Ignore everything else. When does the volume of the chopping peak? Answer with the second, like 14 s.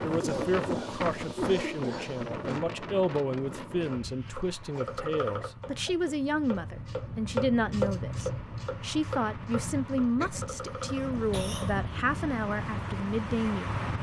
8 s.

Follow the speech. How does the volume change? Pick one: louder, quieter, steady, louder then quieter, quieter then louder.
steady.